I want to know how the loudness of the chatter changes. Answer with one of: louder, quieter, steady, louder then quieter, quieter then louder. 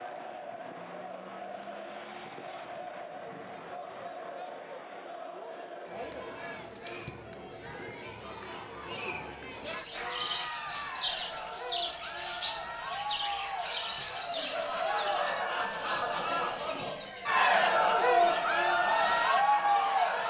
louder.